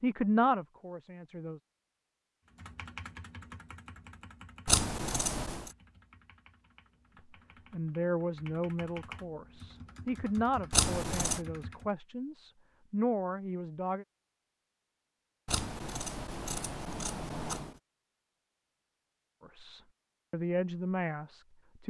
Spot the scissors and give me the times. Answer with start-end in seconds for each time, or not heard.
4.7-5.7, 10.7-11.4, 15.4-17.7.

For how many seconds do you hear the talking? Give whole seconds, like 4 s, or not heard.
11 s.